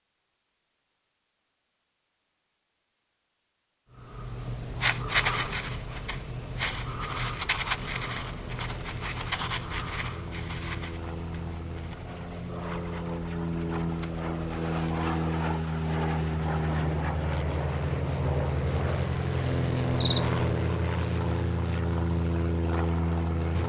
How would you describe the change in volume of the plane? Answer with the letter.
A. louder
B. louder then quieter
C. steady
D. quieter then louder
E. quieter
A.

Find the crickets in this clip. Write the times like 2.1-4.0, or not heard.
4.0-23.6.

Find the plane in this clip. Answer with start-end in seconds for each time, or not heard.
4.7-23.6.